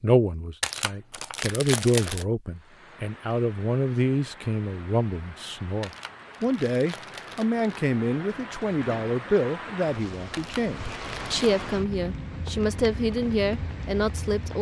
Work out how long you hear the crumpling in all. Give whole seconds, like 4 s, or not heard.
5 s.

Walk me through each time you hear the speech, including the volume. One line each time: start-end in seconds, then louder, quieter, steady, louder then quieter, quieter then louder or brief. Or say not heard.
0.0-14.5 steady.